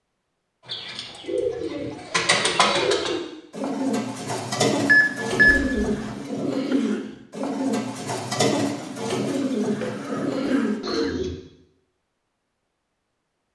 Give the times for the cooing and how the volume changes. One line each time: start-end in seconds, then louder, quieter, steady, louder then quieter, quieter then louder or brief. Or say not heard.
0.7-11.3 steady.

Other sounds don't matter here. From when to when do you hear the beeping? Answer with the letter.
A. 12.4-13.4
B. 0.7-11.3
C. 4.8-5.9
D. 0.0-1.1
C.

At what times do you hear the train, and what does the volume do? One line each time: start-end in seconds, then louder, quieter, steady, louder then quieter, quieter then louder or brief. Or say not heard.
not heard.